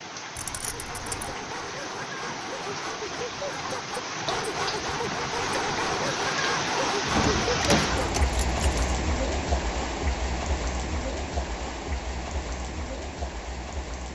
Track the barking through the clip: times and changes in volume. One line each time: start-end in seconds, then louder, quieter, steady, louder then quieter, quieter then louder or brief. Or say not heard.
0.8-8.1 louder.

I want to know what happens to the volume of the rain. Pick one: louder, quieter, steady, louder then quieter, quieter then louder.
louder then quieter.